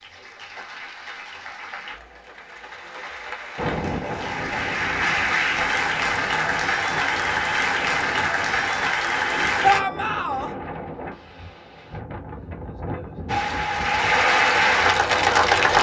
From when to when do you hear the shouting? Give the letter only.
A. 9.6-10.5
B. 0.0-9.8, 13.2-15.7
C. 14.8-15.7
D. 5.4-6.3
A.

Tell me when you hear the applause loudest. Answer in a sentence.
The loudest moment of the applause is at 15 seconds.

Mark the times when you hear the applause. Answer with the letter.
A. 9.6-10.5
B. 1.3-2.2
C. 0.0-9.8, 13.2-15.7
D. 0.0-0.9
C.